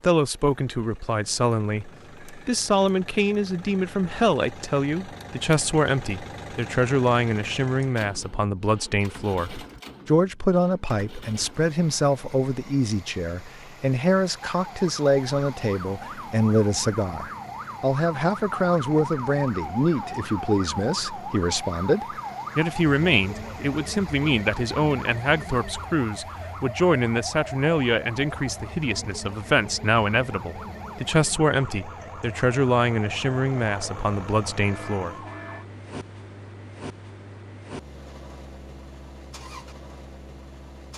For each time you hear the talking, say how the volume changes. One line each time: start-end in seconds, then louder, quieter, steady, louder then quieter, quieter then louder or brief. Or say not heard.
0.0-35.1 steady.